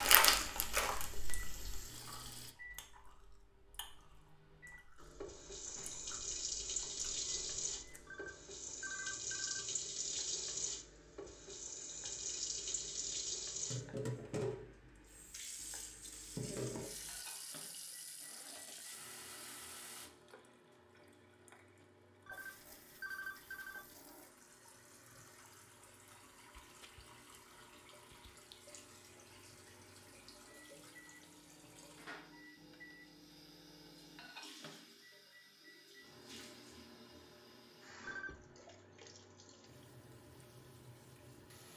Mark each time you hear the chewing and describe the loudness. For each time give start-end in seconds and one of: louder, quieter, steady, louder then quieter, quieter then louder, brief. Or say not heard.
0.0-8.1 quieter.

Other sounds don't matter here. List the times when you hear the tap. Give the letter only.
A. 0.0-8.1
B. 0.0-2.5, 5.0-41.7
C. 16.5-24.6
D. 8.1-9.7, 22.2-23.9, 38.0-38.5
B.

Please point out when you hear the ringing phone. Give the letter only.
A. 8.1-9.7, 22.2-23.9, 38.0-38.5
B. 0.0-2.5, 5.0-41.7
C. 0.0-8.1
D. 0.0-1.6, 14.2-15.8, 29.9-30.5
A.